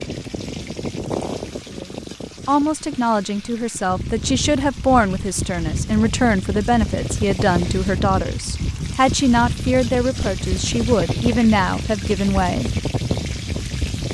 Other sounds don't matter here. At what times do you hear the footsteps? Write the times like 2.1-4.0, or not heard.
not heard.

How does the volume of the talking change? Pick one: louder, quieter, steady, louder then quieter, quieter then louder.
steady.